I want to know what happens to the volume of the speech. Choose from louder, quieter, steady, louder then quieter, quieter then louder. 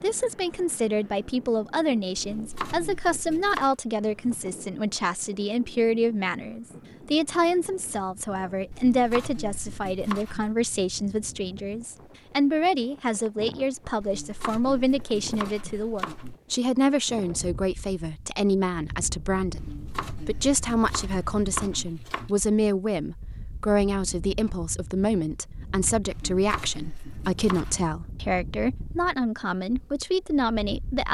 steady.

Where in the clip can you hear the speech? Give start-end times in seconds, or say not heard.
0.0-31.0.